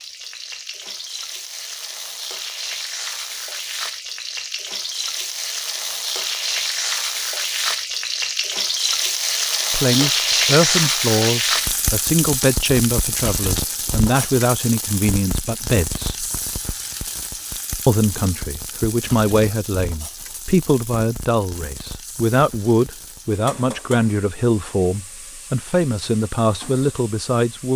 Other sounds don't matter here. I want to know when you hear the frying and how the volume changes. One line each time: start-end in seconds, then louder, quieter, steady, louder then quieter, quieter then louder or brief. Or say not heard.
0.0-27.7 louder then quieter.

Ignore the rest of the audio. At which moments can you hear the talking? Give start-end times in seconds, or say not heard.
9.7-16.3, 17.9-27.7.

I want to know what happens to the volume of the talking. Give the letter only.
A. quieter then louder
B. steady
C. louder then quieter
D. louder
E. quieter
B.